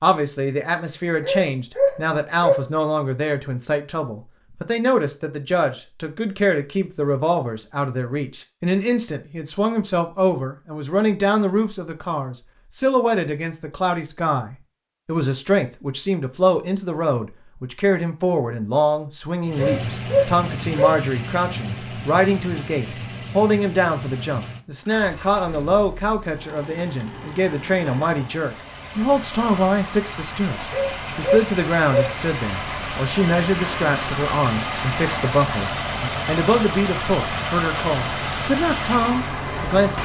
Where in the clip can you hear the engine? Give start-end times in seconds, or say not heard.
19.4-40.0.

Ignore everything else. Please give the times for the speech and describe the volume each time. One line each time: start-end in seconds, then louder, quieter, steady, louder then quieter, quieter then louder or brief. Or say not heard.
0.0-40.0 steady.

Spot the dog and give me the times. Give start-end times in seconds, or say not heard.
1.2-2.6, 19.6-21.0, 30.7-32.1.